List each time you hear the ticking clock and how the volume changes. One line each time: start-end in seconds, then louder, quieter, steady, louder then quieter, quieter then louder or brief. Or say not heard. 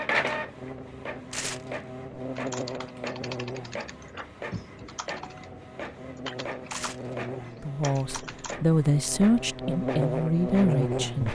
not heard.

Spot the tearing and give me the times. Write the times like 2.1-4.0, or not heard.
1.3-1.8, 6.7-7.2.